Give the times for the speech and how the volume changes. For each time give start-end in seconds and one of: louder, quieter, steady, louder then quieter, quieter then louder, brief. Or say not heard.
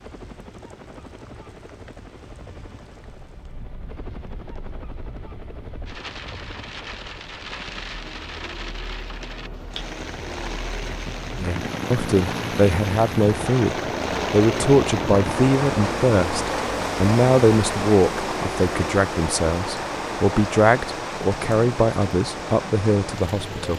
11.4-23.7 steady.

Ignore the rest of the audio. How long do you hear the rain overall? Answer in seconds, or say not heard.
24 s.